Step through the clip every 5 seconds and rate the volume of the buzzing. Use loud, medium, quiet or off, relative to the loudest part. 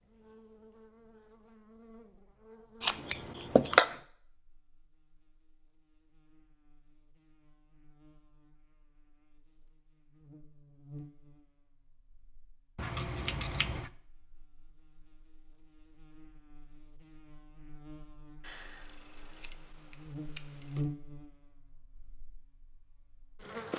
quiet, quiet, quiet, quiet, loud.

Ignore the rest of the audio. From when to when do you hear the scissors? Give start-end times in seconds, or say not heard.
2.8-4.0, 12.8-13.9, 18.4-20.8.